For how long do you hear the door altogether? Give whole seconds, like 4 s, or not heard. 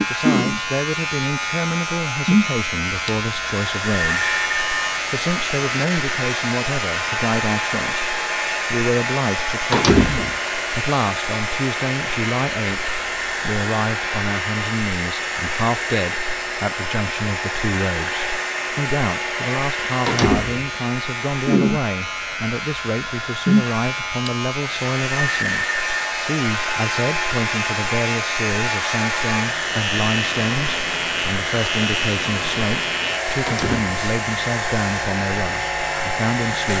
2 s.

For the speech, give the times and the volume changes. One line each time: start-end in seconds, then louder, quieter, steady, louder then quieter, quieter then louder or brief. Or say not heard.
0.1-4.4 steady
5.1-36.7 steady.